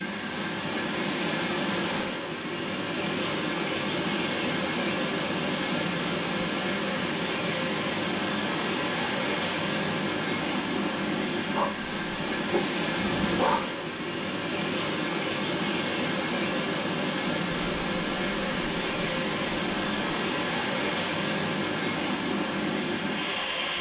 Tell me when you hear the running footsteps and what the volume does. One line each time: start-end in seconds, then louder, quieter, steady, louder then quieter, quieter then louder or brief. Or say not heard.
not heard.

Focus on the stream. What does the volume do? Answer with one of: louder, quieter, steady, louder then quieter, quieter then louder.
steady.